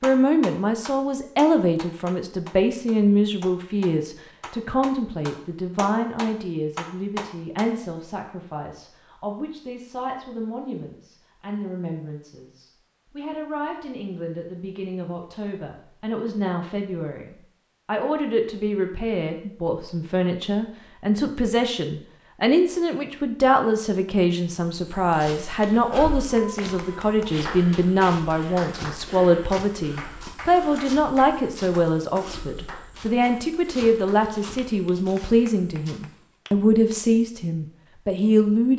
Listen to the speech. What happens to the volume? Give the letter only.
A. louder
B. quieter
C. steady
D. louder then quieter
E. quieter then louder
E.